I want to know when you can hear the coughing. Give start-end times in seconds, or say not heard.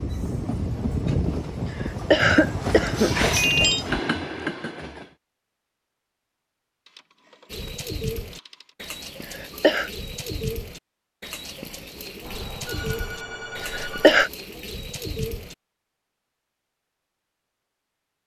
1.6-3.2, 9.2-9.9, 13.6-14.3.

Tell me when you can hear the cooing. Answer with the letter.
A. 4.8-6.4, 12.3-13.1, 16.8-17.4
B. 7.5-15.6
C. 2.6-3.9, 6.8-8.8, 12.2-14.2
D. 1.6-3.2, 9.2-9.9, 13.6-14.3
B.